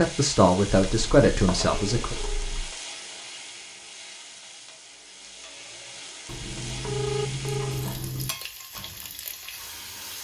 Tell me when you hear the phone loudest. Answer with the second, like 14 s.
7 s.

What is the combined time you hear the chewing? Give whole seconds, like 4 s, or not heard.
4 s.